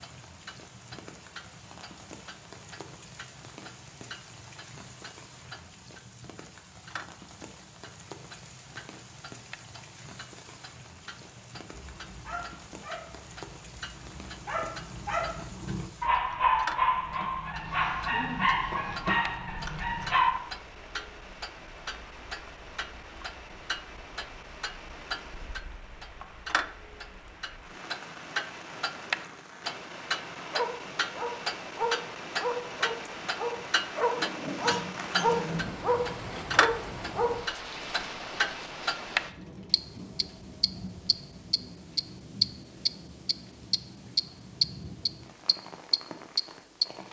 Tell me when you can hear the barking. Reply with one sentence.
You can hear the barking from 11.7 to 20.4 s and from 30.5 to 37.4 s.